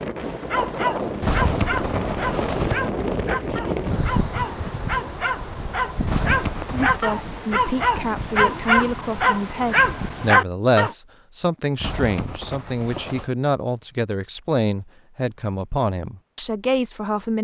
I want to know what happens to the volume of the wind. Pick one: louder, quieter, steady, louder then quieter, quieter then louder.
quieter.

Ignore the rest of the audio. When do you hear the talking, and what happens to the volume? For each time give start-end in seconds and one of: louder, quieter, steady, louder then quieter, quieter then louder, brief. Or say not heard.
6.7-17.3 steady.